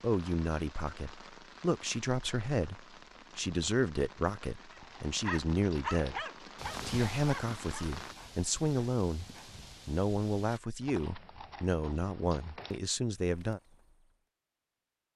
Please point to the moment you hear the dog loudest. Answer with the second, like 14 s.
6 s.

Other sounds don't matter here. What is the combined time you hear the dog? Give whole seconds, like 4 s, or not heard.
3 s.